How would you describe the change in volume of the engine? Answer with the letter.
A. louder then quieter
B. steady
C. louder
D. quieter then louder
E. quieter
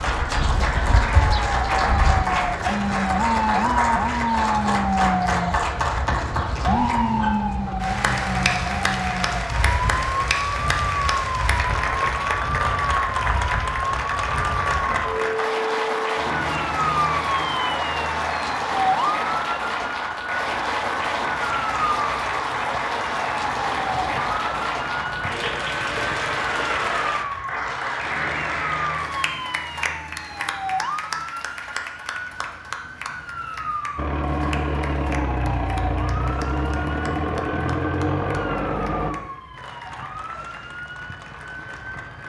B.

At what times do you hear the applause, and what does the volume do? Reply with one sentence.
You can hear the applause from 0.0 to 42.2 s, getting quieter.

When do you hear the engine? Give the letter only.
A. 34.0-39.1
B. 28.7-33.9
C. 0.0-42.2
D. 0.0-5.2
A.